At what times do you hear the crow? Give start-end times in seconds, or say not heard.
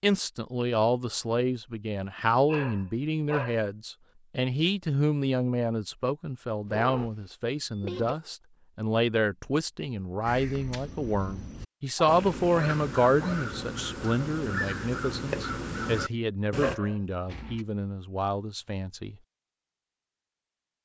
10.2-16.8.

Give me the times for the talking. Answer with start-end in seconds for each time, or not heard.
0.0-19.1.